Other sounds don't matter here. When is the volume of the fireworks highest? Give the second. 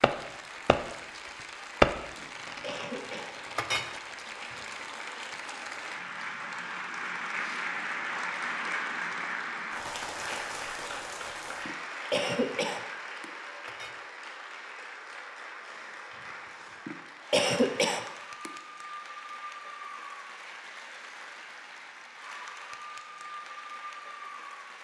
2 s.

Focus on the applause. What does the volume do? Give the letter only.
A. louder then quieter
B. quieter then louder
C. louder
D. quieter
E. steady
A.